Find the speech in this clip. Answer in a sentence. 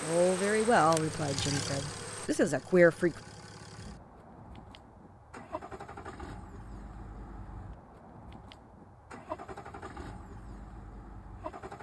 The speech can be heard from 0.0 to 3.2 s.